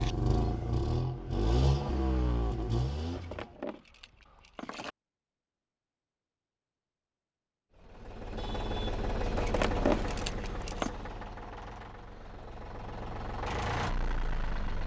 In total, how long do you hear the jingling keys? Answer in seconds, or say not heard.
3 s.